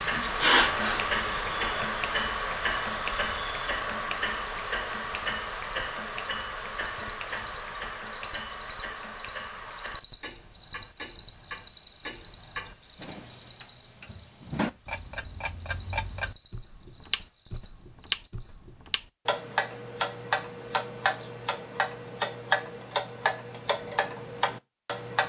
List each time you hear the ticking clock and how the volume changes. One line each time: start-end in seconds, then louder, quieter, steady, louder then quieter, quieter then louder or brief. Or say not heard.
0.0-25.2 quieter then louder.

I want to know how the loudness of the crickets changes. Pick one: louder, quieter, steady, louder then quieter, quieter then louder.
louder then quieter.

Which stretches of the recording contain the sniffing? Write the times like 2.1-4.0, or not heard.
0.1-1.1.